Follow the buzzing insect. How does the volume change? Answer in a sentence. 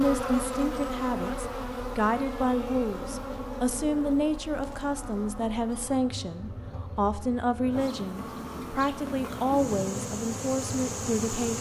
The volume of the buzzing insect goes down, then up.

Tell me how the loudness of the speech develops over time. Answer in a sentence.
The loudness of the speech stays about the same.